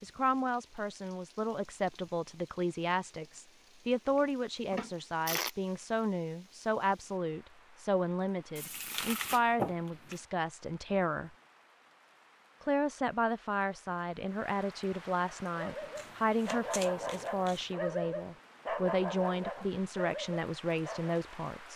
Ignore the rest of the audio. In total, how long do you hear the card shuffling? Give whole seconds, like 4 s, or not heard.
4 s.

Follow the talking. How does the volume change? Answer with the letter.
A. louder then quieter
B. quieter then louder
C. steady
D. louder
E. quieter
C.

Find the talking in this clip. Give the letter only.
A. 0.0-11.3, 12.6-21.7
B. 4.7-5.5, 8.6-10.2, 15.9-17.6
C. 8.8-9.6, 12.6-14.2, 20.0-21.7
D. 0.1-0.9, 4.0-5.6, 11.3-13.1
A.